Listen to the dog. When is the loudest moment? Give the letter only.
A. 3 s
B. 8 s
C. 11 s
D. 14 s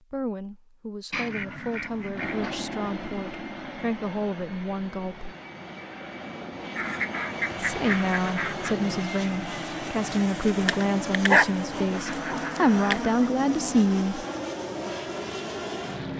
C.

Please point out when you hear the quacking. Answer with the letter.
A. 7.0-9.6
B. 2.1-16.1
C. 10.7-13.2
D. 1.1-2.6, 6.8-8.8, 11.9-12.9
D.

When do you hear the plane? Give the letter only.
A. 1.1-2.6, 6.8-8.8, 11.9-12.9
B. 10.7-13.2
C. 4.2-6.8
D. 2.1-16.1
D.